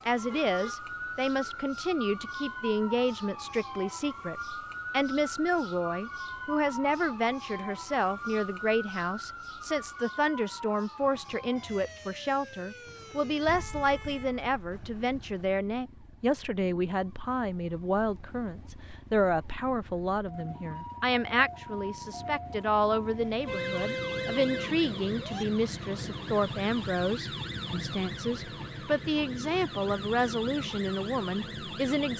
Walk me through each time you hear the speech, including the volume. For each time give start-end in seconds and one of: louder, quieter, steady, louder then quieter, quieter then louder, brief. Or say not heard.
0.1-32.1 steady.